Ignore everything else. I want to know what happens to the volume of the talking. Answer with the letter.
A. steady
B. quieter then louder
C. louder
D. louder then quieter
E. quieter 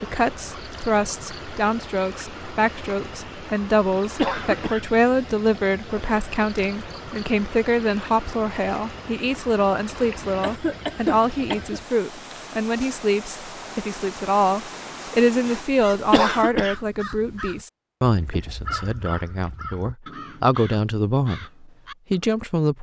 A.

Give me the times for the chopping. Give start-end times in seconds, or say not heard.
not heard.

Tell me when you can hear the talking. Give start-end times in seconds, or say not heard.
0.0-22.7.